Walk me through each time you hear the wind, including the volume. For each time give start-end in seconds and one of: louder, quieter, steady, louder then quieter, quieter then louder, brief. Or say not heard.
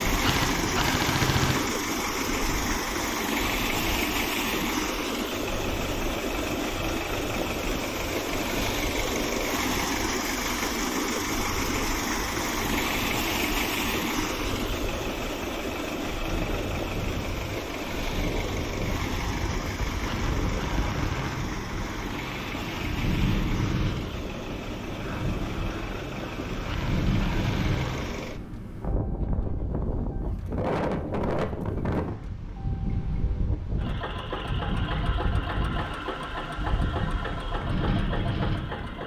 0.0-39.0 louder.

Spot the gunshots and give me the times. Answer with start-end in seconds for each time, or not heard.
0.1-1.8, 19.9-21.6, 26.5-28.1.